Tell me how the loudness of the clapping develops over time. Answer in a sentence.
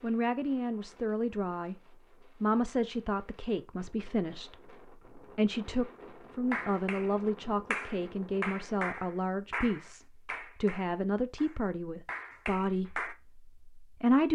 The volume of the clapping goes down, then up.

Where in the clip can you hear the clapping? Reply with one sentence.
The clapping can be heard from 6.5 to 13.2 s.